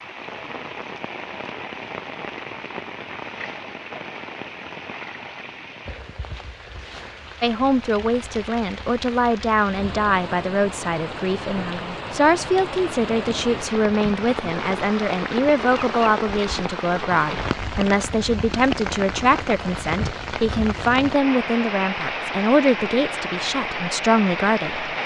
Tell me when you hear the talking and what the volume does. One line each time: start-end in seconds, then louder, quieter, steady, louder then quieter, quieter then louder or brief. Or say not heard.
7.4-24.9 steady.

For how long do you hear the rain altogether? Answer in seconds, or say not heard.
25 s.